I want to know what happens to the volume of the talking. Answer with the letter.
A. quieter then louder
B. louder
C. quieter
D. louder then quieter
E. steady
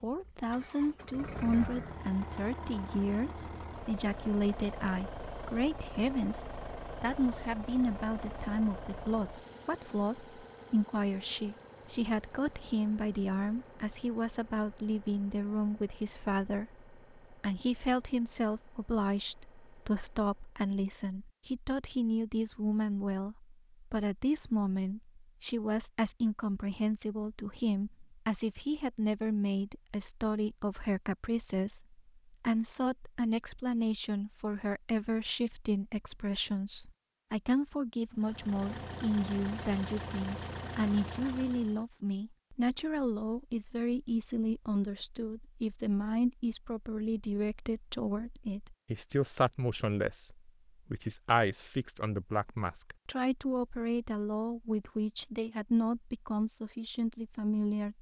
E.